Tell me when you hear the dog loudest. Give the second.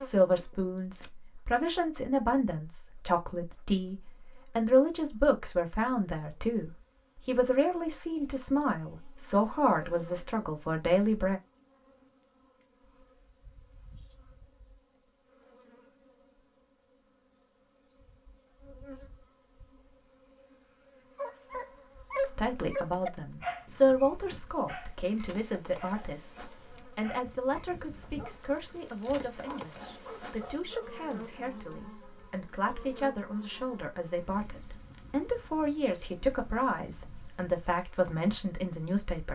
22 s.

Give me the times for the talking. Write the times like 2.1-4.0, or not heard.
0.0-11.4, 22.2-39.2.